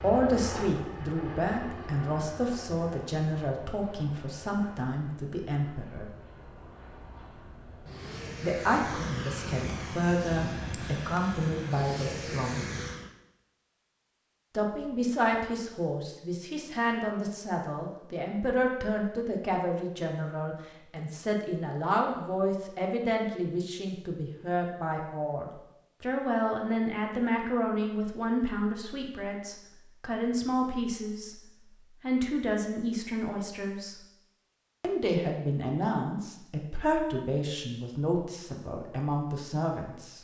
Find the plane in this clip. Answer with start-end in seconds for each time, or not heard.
0.0-13.1.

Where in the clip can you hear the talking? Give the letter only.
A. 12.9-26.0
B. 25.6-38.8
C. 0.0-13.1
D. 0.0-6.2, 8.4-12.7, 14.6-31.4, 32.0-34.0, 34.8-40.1
D.